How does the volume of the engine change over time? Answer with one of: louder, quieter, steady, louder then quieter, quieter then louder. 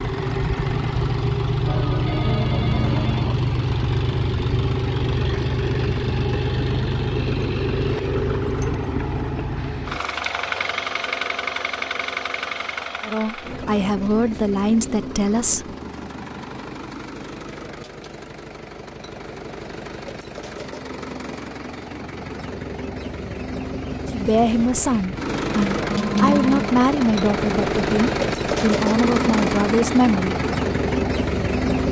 quieter then louder.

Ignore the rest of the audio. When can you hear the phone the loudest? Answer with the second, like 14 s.
26 s.